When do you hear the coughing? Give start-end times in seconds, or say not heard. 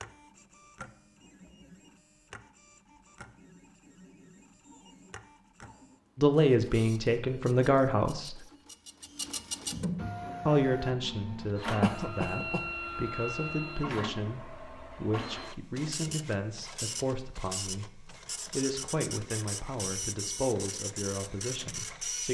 11.8-12.7.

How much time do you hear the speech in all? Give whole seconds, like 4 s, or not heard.
14 s.